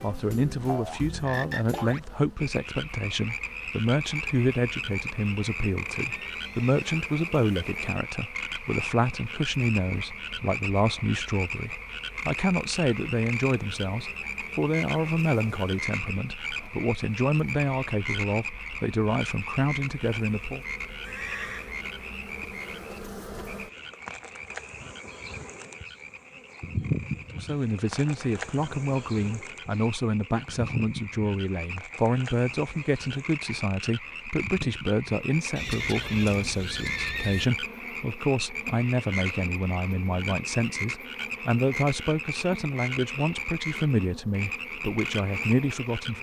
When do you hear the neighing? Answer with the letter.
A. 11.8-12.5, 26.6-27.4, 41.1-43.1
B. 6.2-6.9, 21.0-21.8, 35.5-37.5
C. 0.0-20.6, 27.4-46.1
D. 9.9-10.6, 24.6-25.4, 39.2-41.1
B.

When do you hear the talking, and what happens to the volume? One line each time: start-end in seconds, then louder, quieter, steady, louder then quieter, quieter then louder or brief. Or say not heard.
0.0-20.6 steady
27.4-46.1 steady.